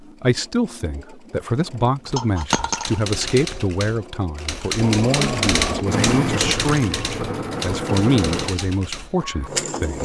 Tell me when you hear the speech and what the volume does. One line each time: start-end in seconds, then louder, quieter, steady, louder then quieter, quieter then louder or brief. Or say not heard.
0.0-10.0 steady.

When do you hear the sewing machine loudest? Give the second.
6 s.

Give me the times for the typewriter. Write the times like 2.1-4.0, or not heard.
2.0-9.3.